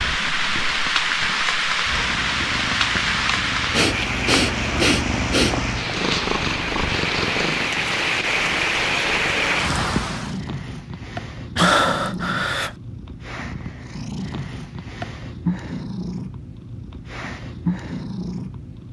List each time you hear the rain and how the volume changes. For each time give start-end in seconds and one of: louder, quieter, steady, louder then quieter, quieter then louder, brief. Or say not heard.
0.0-10.4 quieter then louder.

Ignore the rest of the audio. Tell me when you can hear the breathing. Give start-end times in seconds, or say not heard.
3.7-5.5, 11.6-12.8.